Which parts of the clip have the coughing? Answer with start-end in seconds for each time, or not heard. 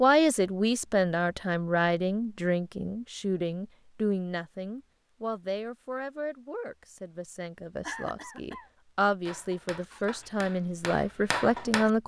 7.8-8.7.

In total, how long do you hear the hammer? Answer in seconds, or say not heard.
3 s.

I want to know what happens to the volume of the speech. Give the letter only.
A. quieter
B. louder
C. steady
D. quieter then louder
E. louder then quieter
D.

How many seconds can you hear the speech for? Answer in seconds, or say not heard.
12 s.